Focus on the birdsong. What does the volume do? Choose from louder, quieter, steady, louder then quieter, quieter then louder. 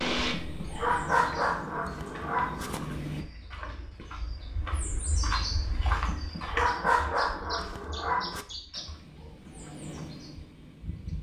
louder then quieter.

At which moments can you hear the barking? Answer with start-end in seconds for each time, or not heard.
0.3-3.0, 6.0-8.4.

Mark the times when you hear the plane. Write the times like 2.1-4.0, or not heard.
0.0-3.2, 8.8-11.1.